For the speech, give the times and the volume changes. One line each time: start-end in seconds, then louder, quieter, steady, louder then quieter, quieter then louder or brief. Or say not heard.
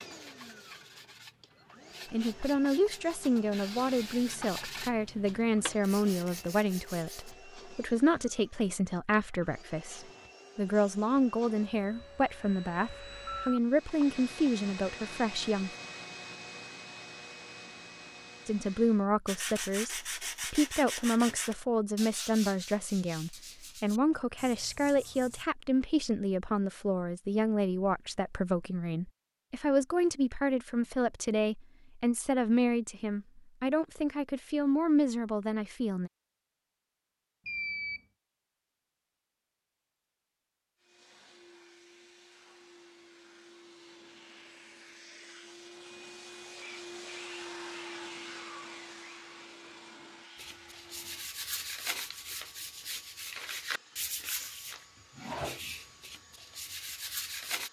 2.1-15.7 steady
18.4-36.1 steady.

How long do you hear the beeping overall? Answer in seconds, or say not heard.
2 s.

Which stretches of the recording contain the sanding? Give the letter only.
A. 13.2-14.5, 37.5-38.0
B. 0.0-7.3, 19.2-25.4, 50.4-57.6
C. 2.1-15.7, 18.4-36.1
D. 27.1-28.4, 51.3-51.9
B.